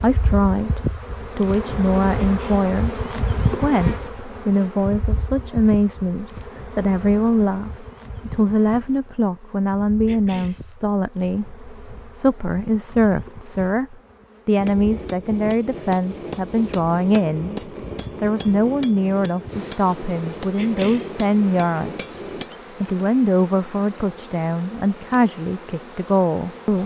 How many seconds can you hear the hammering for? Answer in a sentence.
The hammering can be heard for 8 seconds in total.